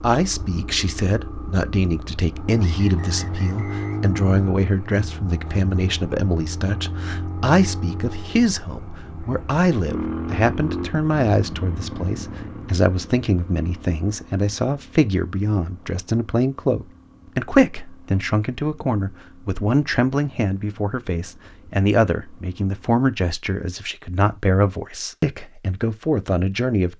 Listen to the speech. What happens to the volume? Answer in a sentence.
The volume of the speech stays about the same.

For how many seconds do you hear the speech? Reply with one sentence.
You can hear the speech for 27 seconds altogether.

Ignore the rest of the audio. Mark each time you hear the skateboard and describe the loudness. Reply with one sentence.
You can't hear the skateboard here.